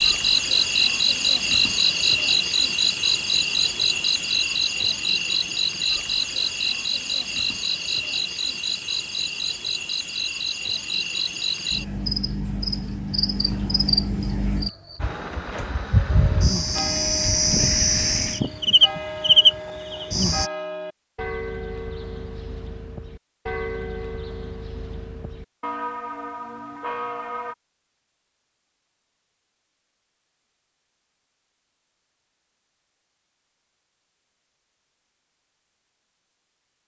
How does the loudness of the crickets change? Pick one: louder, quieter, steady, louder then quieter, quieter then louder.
quieter then louder.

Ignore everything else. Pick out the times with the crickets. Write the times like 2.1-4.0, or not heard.
0.0-20.5.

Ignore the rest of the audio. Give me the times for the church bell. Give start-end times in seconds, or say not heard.
16.1-27.6.